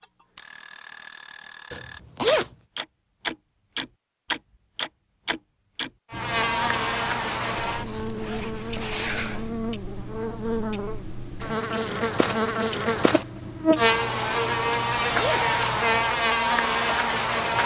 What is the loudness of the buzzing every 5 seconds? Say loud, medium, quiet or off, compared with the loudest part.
off, medium, loud, loud.